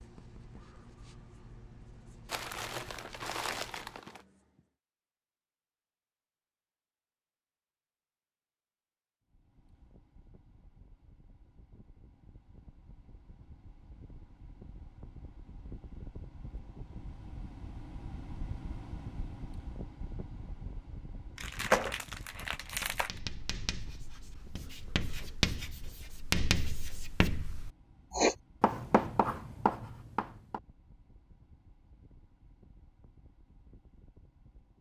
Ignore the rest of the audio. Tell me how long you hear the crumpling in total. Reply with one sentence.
You can hear the crumpling for 4 seconds altogether.